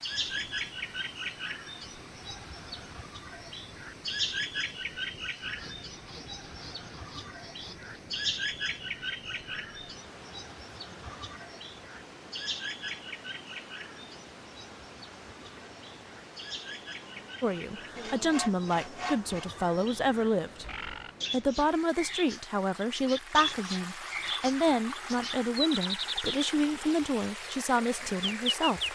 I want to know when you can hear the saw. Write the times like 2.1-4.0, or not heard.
5.4-8.0, 17.9-19.6.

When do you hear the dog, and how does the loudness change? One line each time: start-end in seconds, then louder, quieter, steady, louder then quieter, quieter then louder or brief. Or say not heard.
not heard.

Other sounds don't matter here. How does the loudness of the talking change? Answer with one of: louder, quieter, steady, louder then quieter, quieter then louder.
steady.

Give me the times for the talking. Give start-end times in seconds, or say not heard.
17.4-20.6, 21.3-28.8.